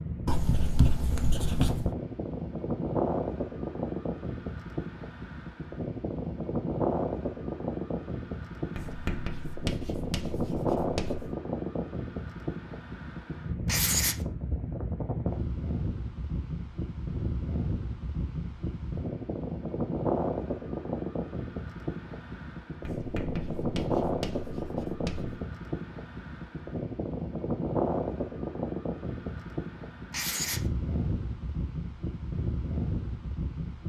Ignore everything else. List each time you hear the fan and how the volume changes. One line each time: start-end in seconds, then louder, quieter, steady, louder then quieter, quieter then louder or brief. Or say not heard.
0.0-33.8 steady.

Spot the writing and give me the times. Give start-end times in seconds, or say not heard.
0.2-1.9, 8.8-11.2, 13.7-14.2, 22.9-25.4, 30.1-30.6.